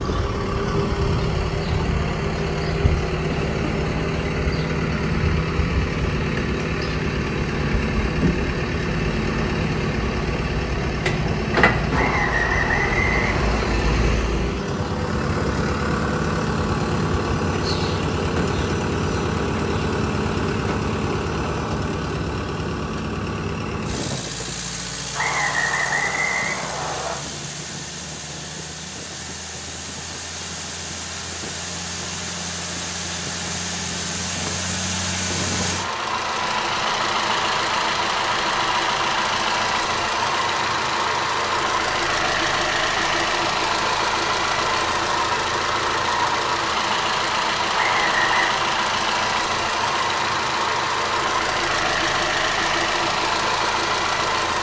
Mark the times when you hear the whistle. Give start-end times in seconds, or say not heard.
11.9-13.6, 25.1-27.1, 47.8-48.5.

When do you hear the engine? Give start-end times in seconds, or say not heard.
0.0-54.5.